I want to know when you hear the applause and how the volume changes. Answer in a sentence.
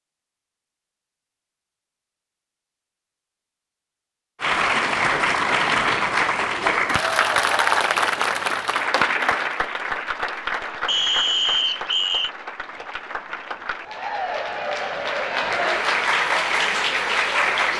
You can hear the applause from 4.4 to 17.7 s, getting quieter then louder.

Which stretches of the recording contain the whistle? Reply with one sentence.
The whistle can be heard from 10.8 to 12.3 s.